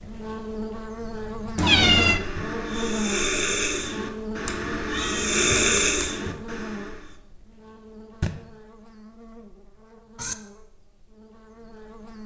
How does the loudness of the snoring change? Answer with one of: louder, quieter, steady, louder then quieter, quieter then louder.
louder.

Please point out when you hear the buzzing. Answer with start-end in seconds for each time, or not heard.
0.0-12.2.